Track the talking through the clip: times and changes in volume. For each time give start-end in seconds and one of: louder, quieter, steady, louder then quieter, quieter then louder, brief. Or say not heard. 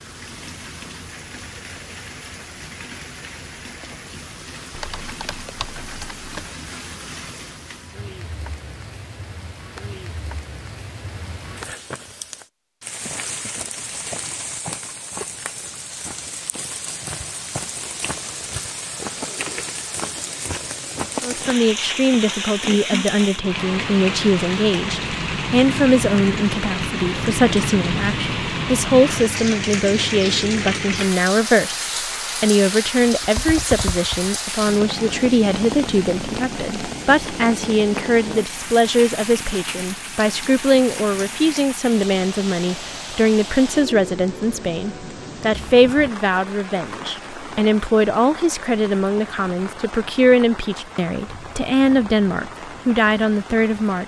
21.2-54.0 steady.